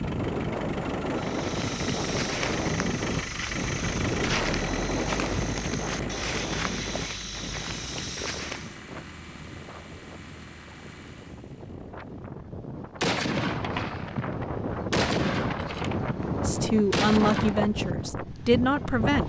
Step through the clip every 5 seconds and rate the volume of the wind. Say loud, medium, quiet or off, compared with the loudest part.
loud, medium, medium, loud.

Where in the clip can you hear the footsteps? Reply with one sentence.
You can hear the footsteps from 1.1 to 8.8 s.